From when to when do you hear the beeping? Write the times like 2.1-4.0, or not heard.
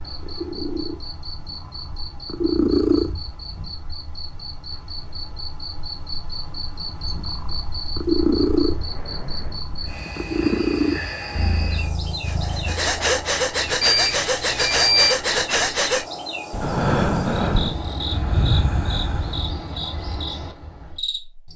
13.8-15.2.